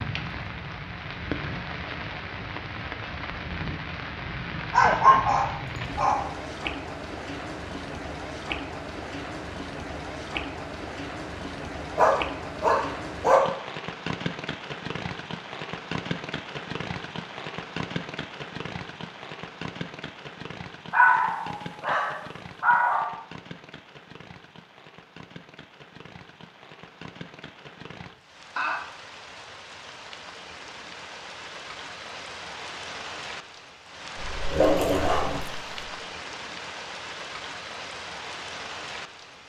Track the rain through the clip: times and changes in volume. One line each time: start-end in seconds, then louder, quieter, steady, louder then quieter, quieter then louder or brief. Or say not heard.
0.0-39.4 quieter then louder.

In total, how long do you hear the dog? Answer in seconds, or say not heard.
7 s.